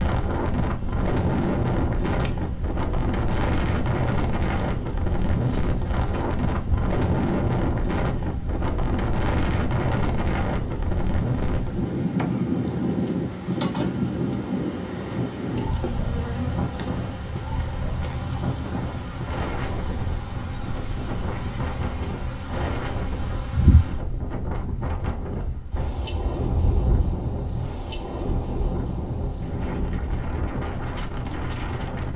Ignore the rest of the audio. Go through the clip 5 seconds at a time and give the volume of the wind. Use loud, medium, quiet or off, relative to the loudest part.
loud, loud, loud, medium, medium, medium, medium.